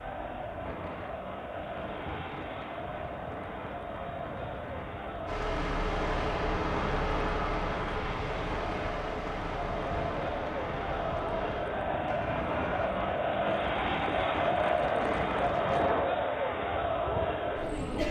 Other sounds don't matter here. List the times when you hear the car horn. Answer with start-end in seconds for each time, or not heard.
not heard.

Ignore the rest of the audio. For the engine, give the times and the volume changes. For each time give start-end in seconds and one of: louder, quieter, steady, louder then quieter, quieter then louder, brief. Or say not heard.
5.2-12.9 quieter.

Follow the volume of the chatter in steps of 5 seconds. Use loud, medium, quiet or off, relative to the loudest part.
medium, medium, loud, loud.